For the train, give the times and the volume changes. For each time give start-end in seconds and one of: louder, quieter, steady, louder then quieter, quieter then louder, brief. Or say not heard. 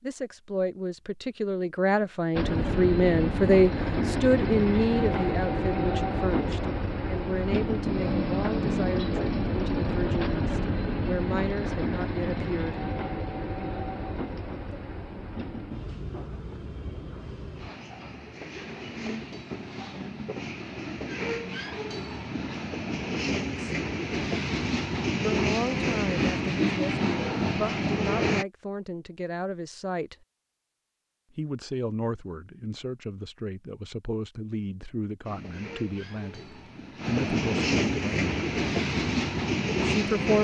2.4-28.4 quieter then louder
35.2-40.3 louder.